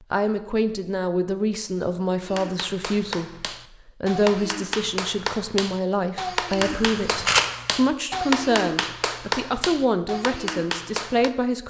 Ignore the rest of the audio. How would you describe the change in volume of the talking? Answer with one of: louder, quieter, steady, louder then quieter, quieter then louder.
steady.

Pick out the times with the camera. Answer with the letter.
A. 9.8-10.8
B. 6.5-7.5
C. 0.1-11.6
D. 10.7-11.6
B.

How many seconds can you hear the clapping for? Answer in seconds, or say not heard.
9 s.